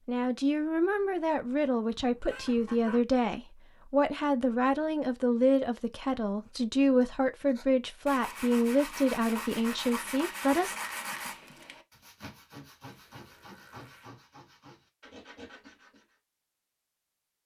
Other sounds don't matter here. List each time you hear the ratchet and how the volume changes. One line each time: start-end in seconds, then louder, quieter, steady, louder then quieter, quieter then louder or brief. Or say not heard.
not heard.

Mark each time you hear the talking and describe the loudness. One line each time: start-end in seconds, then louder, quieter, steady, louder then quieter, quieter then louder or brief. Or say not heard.
0.1-10.8 steady.